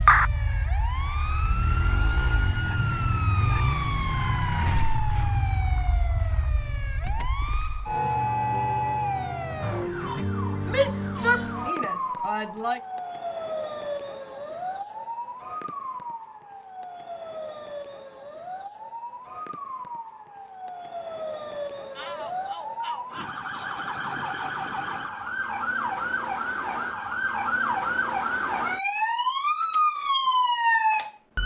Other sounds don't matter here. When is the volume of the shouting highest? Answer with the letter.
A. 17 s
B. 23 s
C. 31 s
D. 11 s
D.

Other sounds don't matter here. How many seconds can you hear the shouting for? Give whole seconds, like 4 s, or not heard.
4 s.